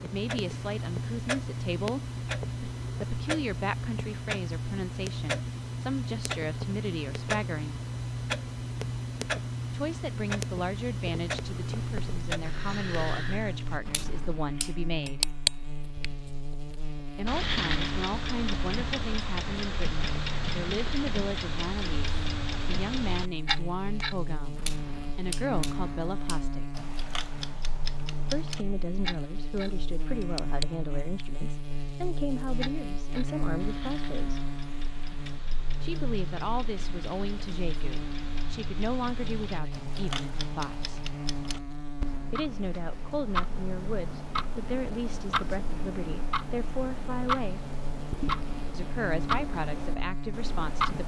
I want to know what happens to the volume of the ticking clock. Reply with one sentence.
The volume of the ticking clock goes down, then up.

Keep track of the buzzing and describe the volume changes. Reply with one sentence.
The volume of the buzzing stays about the same.